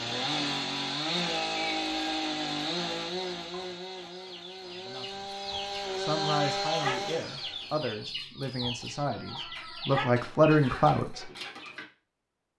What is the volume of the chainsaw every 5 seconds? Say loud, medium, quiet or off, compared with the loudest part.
loud, loud, off.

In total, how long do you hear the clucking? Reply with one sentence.
The clucking can be heard for 9 seconds in total.